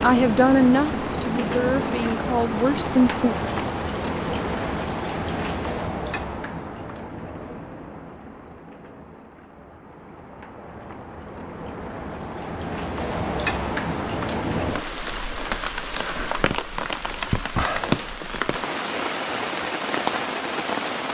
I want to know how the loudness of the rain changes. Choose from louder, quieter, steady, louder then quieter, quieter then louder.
quieter then louder.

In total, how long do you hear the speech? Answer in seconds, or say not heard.
3 s.